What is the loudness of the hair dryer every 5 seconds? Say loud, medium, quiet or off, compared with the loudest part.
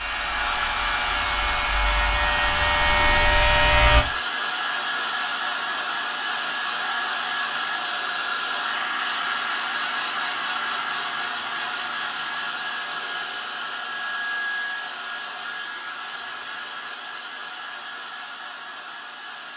loud, loud, loud, medium.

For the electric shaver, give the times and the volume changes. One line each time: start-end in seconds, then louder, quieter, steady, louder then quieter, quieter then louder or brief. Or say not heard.
0.0-4.0 louder.